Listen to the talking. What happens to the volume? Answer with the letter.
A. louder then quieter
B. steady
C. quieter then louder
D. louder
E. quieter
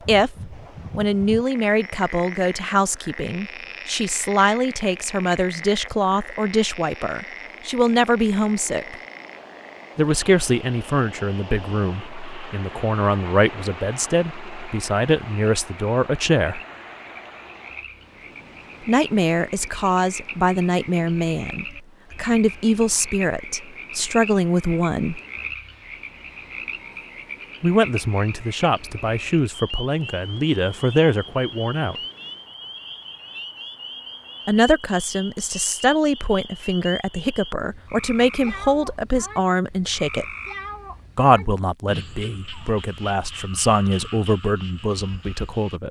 B.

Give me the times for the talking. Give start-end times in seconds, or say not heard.
0.1-8.9, 9.9-16.6, 18.9-25.2, 27.6-31.9, 34.5-40.2, 41.1-45.8.